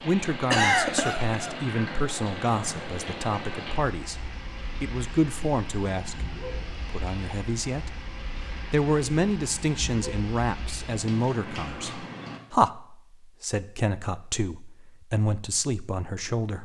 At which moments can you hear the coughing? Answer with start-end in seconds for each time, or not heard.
0.5-1.6.